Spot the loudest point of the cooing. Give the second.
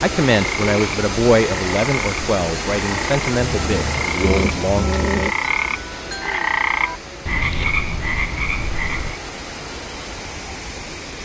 5 s.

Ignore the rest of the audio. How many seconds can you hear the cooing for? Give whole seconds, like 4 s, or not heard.
2 s.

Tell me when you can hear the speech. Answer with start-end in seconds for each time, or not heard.
0.0-4.9.